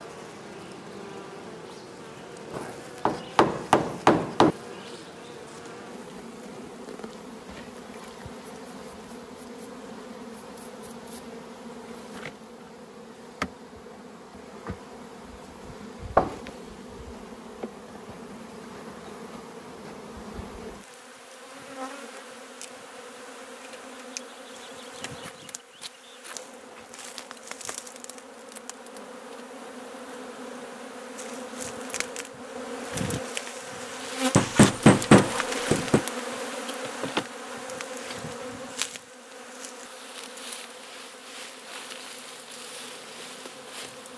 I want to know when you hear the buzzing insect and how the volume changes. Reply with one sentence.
The buzzing insect can be heard from 0.0 to 44.1 s, getting louder.